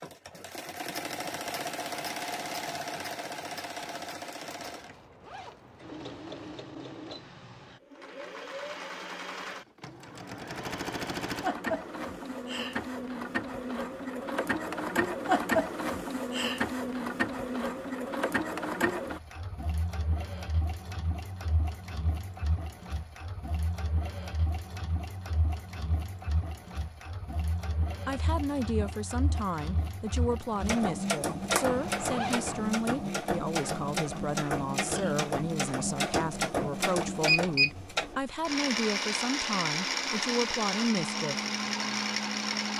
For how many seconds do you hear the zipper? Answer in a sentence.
The zipper can be heard for 3 seconds in total.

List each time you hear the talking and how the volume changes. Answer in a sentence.
The talking can be heard from 28.1 to 41.4 s, at a steady volume.